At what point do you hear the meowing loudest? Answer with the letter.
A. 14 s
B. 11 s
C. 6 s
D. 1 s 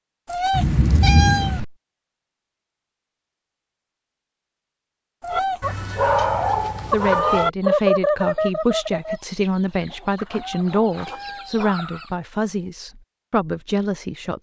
D.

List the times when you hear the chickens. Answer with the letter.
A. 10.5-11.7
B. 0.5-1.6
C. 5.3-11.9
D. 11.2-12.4
C.